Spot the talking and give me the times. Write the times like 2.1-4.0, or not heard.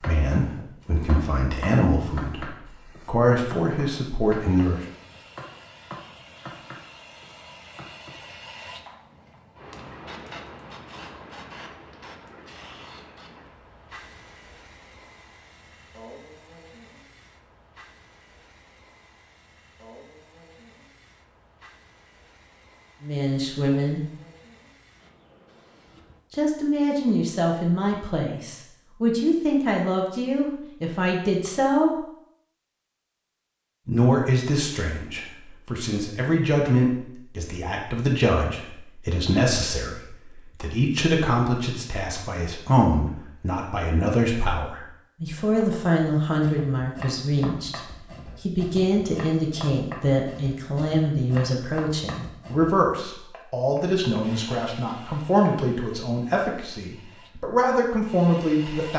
0.0-4.8, 23.0-24.0, 26.3-31.9, 33.9-47.8, 48.4-58.9.